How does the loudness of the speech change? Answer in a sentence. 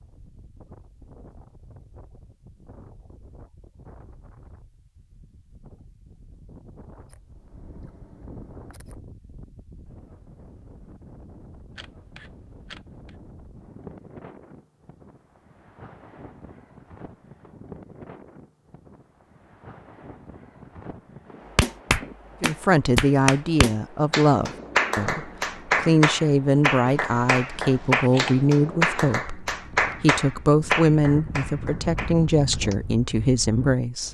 The volume of the speech stays about the same.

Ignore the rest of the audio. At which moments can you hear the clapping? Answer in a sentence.
You can hear the clapping from 21.6 to 32.8 s.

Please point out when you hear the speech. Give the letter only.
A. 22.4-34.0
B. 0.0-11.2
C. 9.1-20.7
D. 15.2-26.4
A.